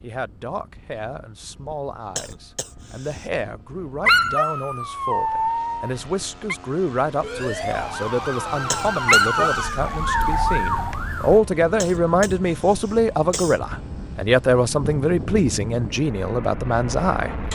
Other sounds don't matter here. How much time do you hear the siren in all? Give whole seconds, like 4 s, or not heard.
4 s.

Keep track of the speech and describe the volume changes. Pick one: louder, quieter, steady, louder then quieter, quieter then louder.
louder.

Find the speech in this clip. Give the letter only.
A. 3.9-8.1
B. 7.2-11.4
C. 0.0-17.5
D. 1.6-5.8
C.